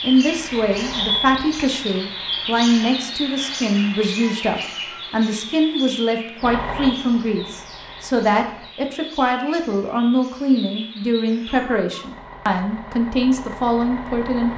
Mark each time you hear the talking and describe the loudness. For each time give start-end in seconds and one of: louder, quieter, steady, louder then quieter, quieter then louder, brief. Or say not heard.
0.0-14.5 steady.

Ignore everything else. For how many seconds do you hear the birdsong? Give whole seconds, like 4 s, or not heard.
12 s.